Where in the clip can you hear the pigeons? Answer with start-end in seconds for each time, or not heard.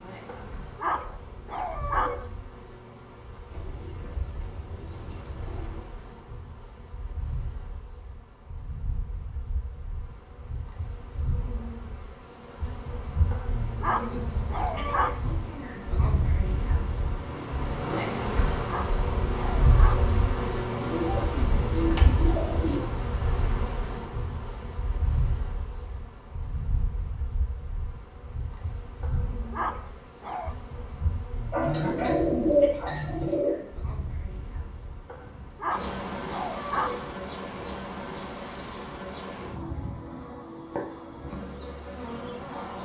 3.5-5.8, 20.8-22.8, 31.5-33.5.